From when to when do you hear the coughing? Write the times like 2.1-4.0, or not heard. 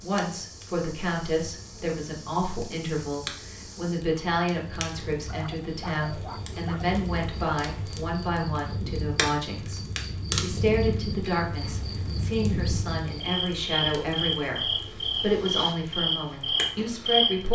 not heard.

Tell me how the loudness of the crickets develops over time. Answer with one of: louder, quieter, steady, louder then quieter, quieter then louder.
louder.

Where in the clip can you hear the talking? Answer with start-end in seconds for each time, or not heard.
0.0-17.5.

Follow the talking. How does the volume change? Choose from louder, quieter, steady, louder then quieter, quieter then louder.
steady.